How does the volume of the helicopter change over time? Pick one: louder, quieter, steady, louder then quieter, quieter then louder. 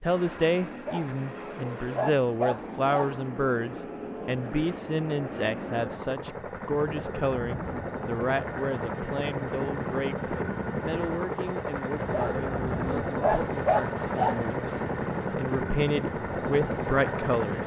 louder.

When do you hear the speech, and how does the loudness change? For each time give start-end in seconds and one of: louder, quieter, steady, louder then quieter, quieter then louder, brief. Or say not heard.
0.0-17.6 quieter then louder.